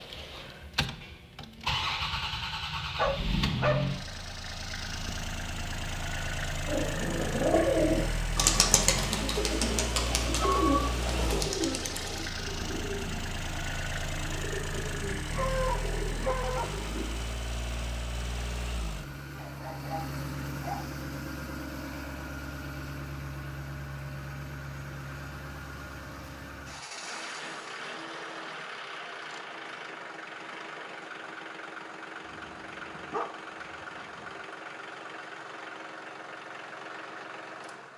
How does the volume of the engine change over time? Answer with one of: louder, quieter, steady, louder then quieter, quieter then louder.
quieter.